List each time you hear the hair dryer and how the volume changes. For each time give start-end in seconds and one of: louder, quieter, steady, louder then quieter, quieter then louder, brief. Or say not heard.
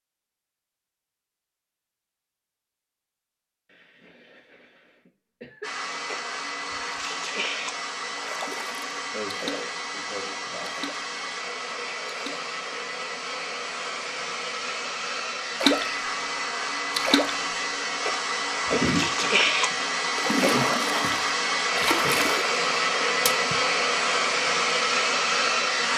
5.6-25.9 louder.